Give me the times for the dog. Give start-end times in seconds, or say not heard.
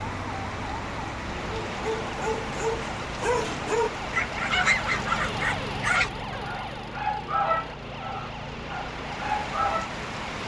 1.6-9.9.